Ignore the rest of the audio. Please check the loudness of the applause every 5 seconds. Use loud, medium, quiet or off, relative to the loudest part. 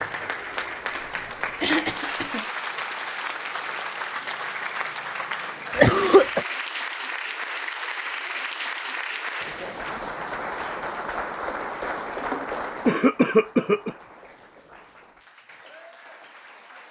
loud, loud, loud, quiet.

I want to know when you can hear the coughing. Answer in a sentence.
You can hear the coughing from 1.4 to 2.5 s, from 5.8 to 6.5 s and from 12.2 to 13.9 s.